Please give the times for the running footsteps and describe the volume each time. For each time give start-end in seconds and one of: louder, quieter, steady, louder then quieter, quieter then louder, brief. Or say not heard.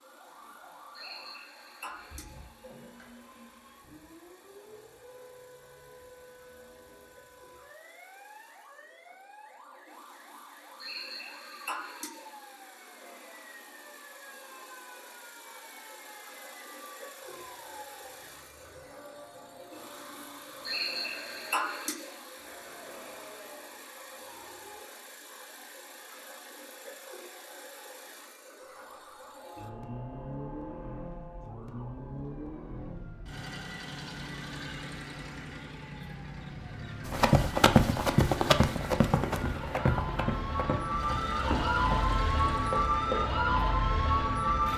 37.0-43.4 quieter.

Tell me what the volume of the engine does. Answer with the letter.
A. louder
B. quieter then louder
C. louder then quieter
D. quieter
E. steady
A.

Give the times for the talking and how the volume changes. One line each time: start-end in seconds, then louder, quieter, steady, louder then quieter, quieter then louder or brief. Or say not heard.
not heard.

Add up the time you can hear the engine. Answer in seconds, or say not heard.
45 s.